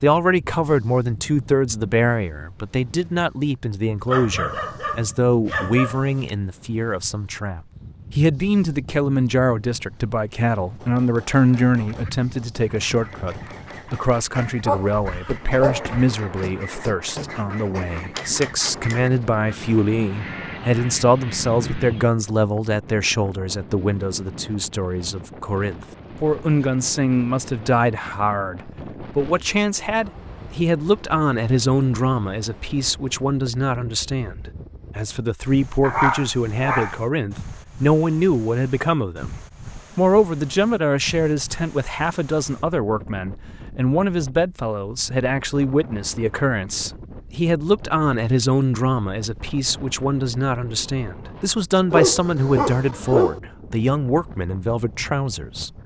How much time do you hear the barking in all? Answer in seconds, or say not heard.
7 s.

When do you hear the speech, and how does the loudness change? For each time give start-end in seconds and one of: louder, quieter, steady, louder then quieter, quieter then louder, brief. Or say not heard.
0.0-55.7 steady.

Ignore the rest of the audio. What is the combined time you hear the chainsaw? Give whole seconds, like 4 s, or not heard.
not heard.